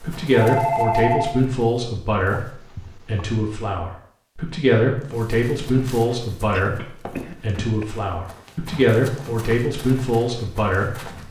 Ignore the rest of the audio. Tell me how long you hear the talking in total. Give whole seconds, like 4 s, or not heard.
11 s.